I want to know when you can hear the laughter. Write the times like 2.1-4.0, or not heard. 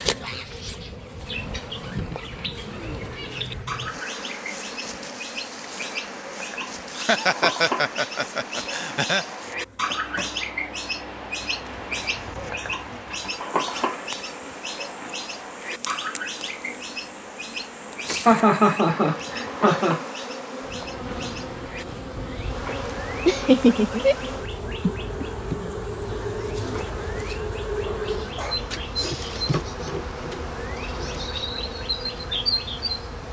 7.0-9.2, 18.2-20.0, 23.2-24.1.